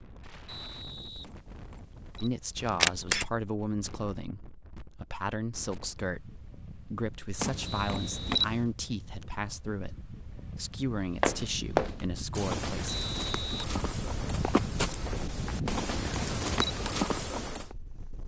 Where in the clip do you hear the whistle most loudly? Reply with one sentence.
The volume of the whistle peaks at 13 seconds.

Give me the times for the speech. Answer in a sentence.
You can hear the speech from 2.2 to 13.0 s.